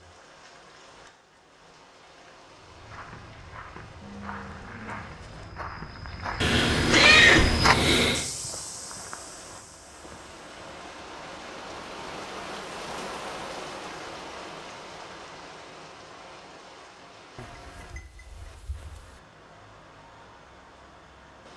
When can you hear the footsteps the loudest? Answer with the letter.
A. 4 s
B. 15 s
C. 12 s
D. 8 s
D.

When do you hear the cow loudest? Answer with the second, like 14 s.
4 s.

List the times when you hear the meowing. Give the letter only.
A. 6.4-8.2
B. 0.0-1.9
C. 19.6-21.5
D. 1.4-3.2
A.